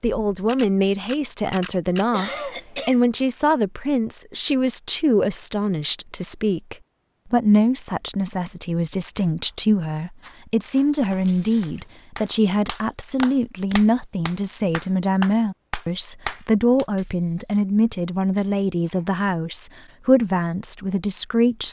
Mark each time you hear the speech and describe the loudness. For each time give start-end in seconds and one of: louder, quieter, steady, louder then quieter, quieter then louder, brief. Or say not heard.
0.0-21.6 steady.